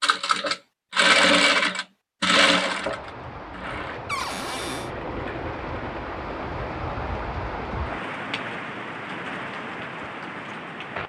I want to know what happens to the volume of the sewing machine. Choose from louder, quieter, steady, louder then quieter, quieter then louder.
quieter.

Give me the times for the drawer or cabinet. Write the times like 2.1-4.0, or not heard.
4.0-4.9.